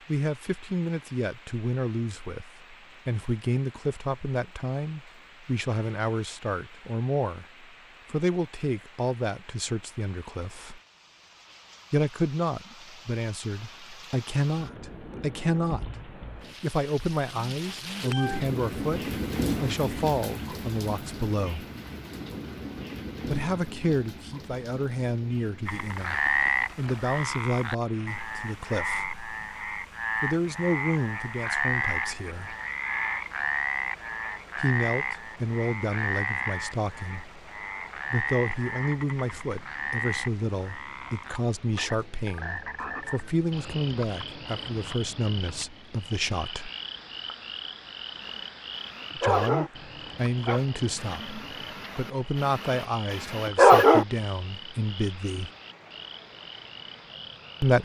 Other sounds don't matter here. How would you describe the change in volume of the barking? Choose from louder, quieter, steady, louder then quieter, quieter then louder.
quieter then louder.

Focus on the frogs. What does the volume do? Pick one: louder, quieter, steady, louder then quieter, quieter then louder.
quieter.